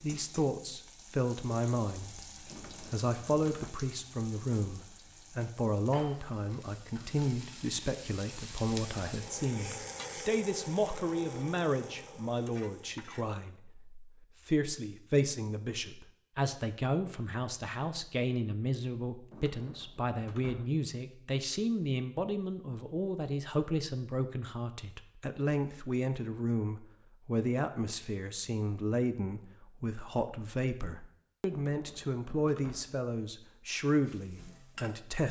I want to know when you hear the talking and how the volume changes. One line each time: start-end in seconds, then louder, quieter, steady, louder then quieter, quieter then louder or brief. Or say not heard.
0.0-2.3 brief
2.9-35.2 steady.